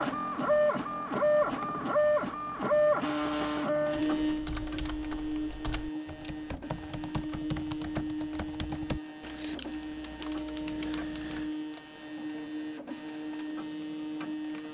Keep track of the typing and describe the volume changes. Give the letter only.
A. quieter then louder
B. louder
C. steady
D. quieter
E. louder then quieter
B.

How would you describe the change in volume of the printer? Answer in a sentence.
The loudness of the printer goes down.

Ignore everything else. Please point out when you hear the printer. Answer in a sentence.
The printer can be heard from 0.0 to 14.6 s.